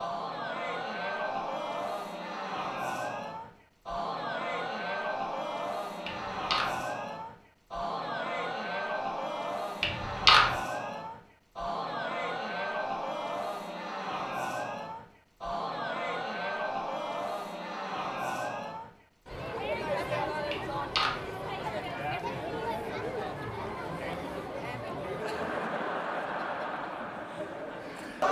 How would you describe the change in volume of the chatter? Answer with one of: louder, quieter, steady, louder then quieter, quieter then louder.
steady.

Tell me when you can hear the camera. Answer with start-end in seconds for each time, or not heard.
6.0-6.8, 9.8-10.5, 20.5-21.2.